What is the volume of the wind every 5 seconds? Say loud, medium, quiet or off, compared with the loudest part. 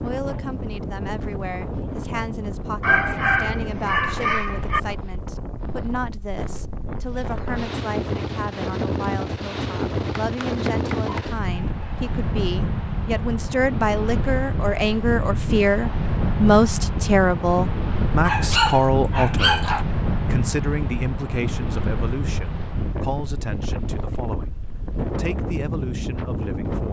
medium, loud, loud, loud, loud, loud.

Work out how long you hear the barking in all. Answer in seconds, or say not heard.
5 s.